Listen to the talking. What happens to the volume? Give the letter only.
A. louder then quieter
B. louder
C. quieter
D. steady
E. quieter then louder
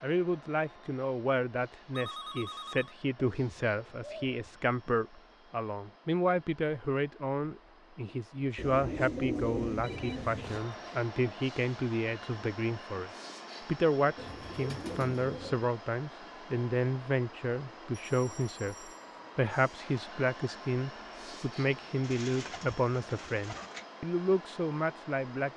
D.